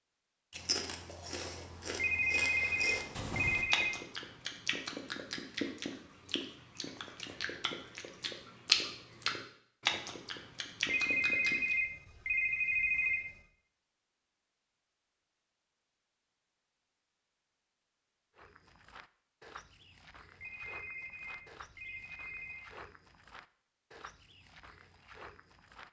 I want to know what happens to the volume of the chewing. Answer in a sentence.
The loudness of the chewing goes up.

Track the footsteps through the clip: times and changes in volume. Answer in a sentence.
You can hear the footsteps from 18.4 to 25.8 s, at a steady volume.